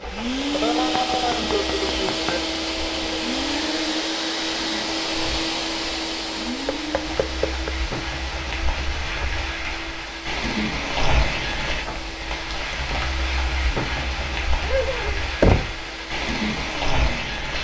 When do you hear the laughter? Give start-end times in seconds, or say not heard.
0.5-2.4, 14.6-15.2.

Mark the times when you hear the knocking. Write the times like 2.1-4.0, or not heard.
0.8-2.4, 6.7-7.7, 15.4-15.8.